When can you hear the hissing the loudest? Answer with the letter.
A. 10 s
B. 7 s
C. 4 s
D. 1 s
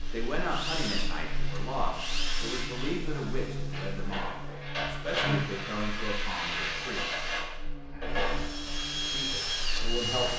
B.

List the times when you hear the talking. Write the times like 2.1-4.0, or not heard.
0.1-7.0, 9.1-10.3.